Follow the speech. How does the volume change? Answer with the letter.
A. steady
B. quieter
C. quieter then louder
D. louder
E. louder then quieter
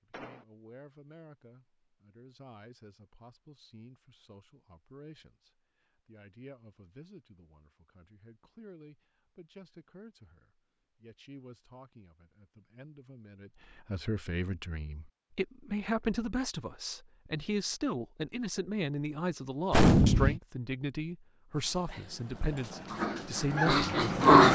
D.